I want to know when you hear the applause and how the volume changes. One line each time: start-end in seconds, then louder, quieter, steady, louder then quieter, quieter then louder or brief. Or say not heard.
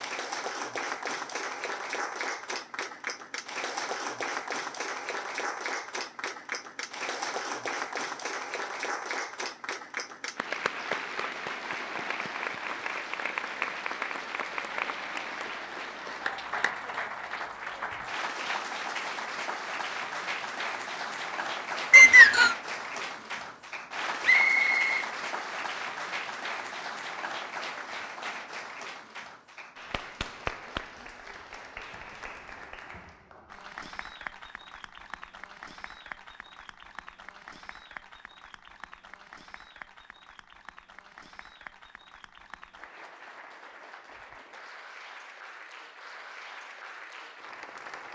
0.0-48.0 quieter.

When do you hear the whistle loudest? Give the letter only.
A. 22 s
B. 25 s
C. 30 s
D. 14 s
A.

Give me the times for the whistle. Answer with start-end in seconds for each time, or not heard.
21.9-22.6, 24.2-25.1.